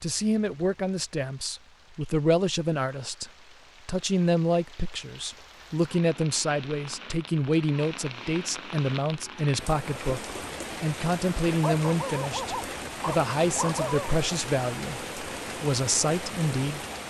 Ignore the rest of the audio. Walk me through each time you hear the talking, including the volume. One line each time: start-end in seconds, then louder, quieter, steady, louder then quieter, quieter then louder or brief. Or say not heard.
0.0-16.9 steady.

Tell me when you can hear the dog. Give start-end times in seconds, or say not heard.
11.6-14.2.